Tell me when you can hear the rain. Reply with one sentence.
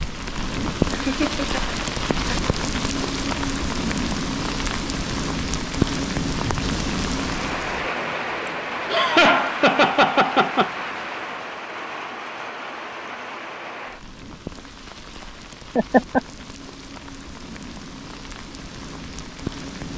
The rain can be heard from 0.0 to 19.9 s.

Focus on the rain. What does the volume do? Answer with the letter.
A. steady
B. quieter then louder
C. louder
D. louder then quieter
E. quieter
E.